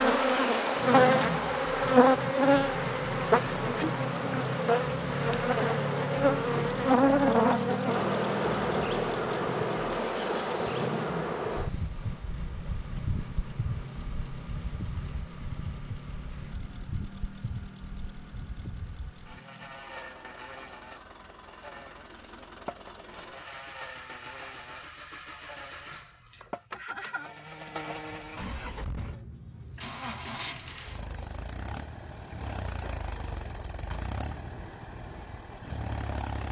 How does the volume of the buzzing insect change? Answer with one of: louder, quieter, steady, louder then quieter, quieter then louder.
quieter.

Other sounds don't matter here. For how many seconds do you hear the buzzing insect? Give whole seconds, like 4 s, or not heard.
30 s.